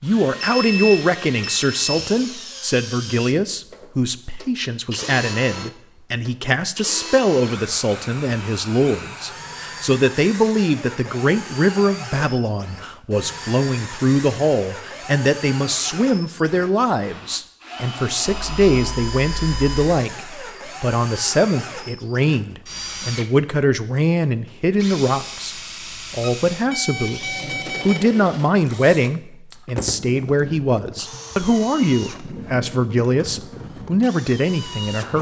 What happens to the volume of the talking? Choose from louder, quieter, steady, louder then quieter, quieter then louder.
steady.